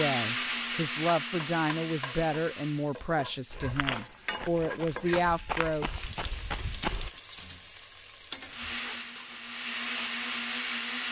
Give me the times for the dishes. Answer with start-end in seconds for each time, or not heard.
not heard.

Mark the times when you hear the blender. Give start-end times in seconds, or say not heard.
0.0-3.0, 8.4-11.0.